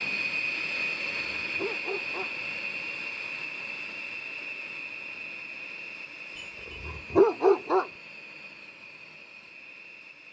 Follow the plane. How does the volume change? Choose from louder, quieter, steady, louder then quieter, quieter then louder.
quieter.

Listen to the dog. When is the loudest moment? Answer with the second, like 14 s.
7 s.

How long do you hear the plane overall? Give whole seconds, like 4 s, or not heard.
10 s.